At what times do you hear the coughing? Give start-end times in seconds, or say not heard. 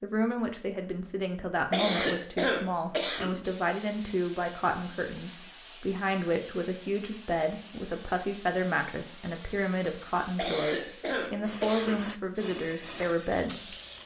1.7-3.5, 10.3-12.1.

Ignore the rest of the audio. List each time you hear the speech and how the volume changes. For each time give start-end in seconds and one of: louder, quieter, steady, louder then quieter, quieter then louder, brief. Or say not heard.
0.0-13.8 steady.